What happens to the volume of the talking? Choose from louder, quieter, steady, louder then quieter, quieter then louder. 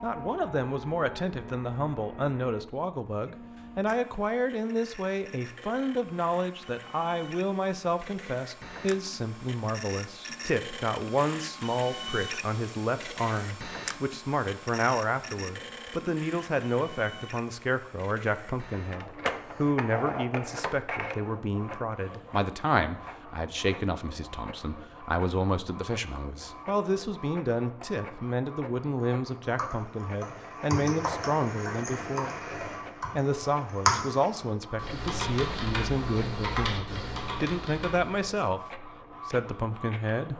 steady.